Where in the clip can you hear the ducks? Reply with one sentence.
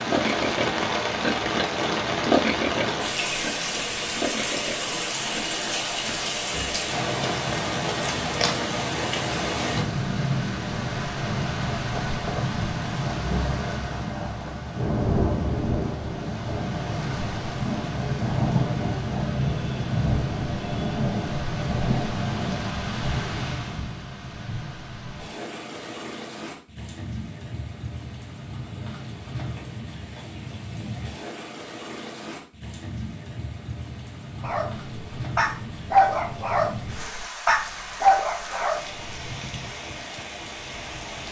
The ducks can't be heard in this clip.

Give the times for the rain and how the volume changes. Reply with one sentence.
The rain can be heard from 0.0 to 41.2 s, getting quieter.